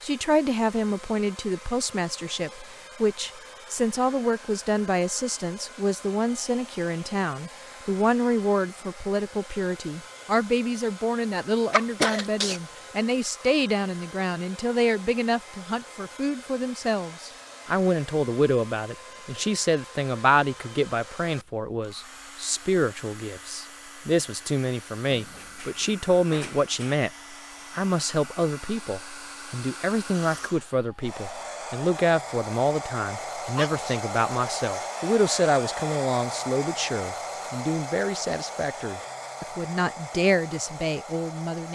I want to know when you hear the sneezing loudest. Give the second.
12 s.